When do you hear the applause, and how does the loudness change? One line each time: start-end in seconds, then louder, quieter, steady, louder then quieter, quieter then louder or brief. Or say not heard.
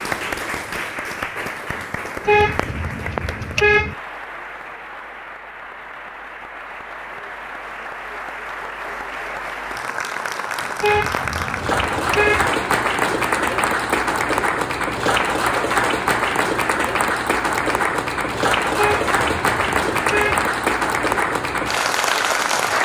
0.0-22.7 louder.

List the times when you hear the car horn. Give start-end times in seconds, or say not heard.
2.2-4.0, 10.8-12.5, 18.8-20.4.